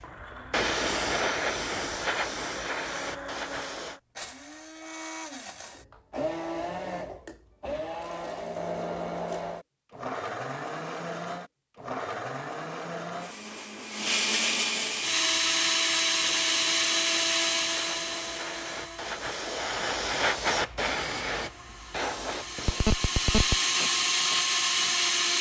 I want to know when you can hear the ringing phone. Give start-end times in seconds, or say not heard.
22.6-23.6.